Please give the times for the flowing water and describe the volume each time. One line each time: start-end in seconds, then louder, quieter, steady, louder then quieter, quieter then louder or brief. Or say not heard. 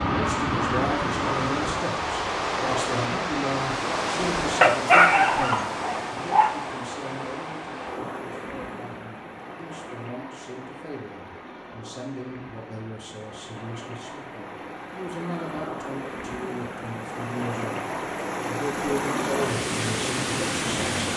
0.0-21.1 quieter then louder.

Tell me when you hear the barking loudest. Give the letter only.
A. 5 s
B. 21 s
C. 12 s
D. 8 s
A.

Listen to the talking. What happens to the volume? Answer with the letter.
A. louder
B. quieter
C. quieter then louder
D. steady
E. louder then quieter
C.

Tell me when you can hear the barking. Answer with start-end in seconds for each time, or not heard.
4.6-6.5.